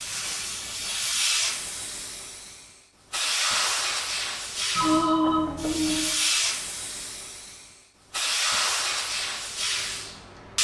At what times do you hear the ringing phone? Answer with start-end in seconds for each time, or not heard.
4.8-6.2.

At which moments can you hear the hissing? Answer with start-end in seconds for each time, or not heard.
0.0-10.5.